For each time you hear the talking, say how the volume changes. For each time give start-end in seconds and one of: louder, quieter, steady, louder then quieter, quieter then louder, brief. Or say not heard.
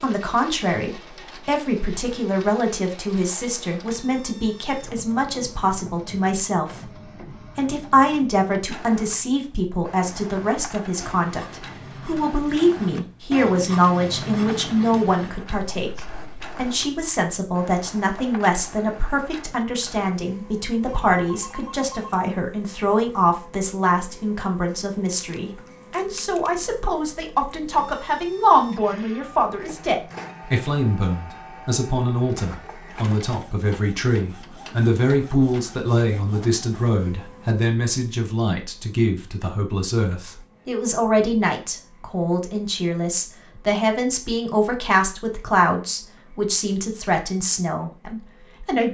0.0-48.8 steady.